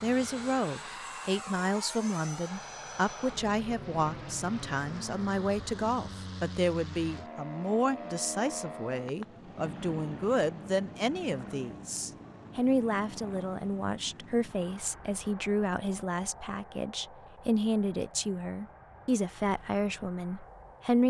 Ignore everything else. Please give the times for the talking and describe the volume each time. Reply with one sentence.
You can hear the talking from 0.0 to 21.0 s, at a steady volume.